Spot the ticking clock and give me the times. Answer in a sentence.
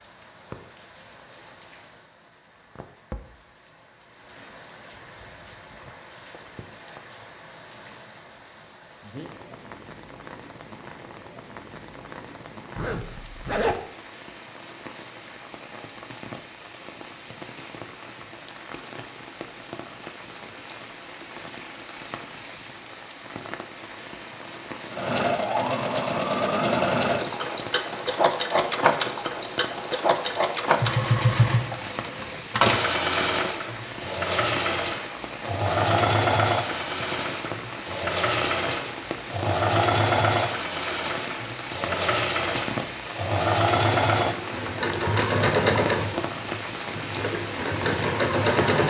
The ticking clock can't be heard in this clip.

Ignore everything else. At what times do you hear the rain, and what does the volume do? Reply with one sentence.
You can hear the rain from 0.0 to 48.8 s, getting louder.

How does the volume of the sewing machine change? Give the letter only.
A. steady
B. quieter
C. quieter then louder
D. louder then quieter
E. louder
A.